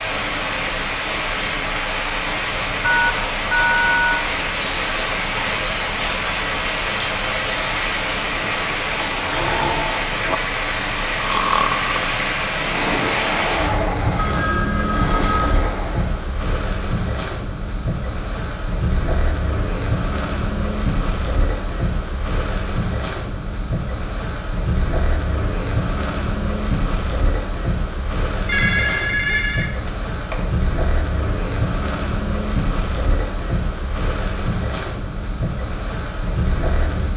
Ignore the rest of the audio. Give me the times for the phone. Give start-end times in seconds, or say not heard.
2.8-4.2, 14.2-15.7, 28.4-30.4.